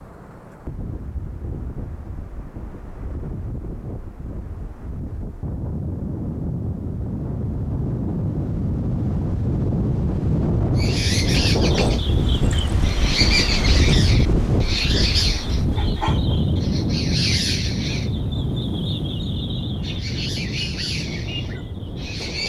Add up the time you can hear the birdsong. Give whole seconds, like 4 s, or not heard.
12 s.